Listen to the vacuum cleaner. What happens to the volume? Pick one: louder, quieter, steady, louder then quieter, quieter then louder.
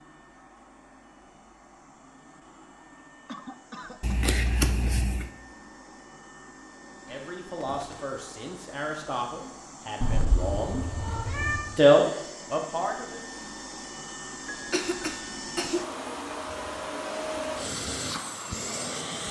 louder.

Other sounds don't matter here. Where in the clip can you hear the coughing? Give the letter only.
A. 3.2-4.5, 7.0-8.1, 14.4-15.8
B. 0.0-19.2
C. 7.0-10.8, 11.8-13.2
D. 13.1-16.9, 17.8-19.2
A.